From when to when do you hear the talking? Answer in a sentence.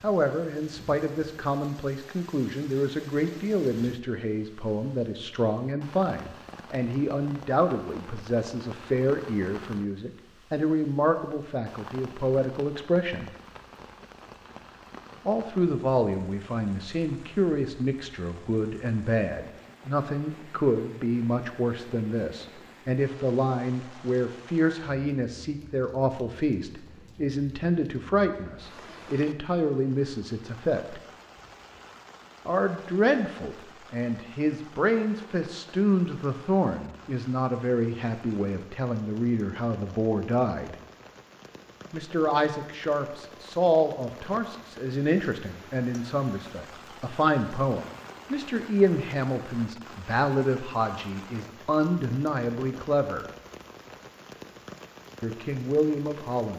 You can hear the talking from 0.0 to 13.3 s, from 15.2 to 31.0 s, from 32.5 to 40.8 s, from 41.9 to 53.2 s and from 55.2 to 56.5 s.